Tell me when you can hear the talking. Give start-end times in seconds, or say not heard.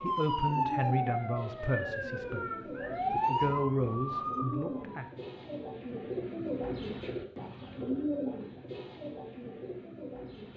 0.0-2.5, 3.1-5.0.